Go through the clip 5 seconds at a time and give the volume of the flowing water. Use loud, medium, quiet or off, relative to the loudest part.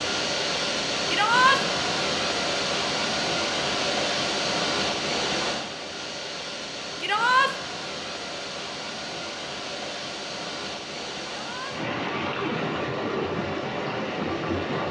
loud, medium, loud.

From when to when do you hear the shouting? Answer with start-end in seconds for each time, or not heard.
1.1-1.6, 7.0-7.5, 11.3-11.8.